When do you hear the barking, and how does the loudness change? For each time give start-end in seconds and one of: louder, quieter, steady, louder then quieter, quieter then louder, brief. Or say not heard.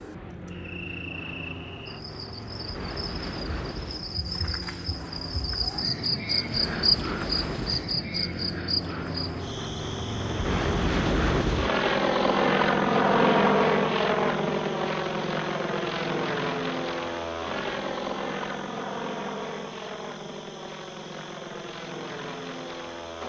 not heard.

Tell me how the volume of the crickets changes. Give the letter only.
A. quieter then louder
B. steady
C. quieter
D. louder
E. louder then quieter
E.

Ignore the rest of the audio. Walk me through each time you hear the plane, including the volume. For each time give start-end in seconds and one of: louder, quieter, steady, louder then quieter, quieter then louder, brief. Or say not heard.
0.0-23.2 louder then quieter.